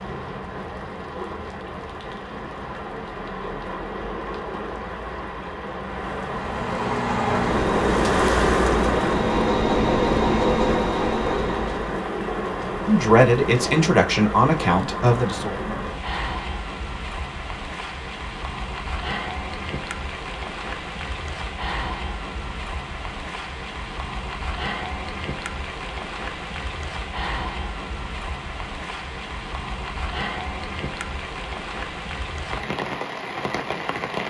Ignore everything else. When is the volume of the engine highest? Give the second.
10 s.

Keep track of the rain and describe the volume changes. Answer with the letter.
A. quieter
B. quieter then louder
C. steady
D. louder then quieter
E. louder
D.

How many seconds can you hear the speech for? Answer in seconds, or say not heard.
3 s.